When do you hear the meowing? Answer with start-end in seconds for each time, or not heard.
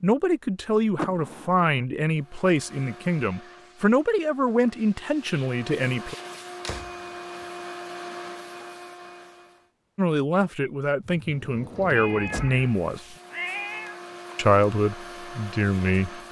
11.9-14.0.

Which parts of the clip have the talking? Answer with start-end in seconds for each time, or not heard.
0.0-6.2, 9.9-13.0, 14.3-16.2.